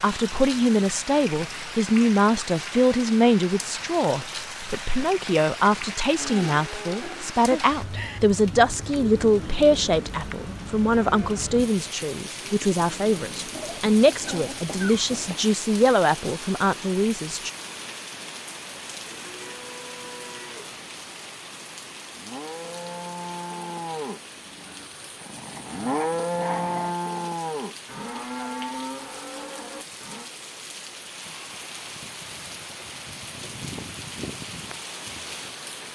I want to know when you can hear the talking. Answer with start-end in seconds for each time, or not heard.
0.0-17.5.